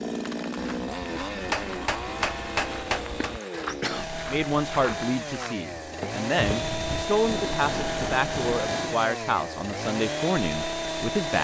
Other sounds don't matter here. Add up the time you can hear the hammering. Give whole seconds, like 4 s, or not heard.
4 s.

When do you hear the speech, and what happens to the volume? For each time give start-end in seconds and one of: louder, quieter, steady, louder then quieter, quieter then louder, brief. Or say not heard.
4.2-11.3 steady.